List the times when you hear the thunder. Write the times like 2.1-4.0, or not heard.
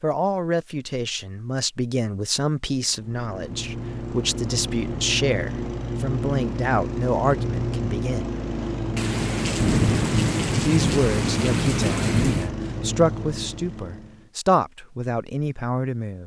8.9-12.5.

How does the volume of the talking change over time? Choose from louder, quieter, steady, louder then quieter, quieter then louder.
steady.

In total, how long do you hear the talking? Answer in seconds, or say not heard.
14 s.